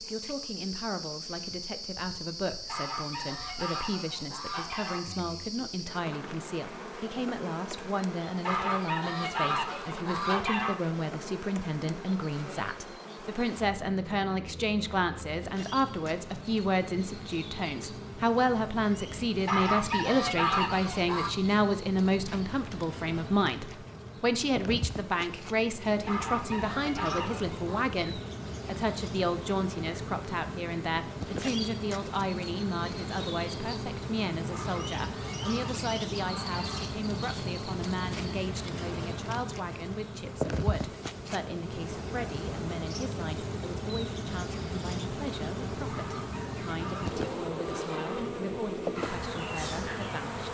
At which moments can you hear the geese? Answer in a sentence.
The geese can be heard from 2.6 to 5.3 s, from 8.4 to 10.8 s, from 19.4 to 21.3 s, from 26.1 to 27.9 s, from 34.5 to 37.0 s and from 45.9 to 48.4 s.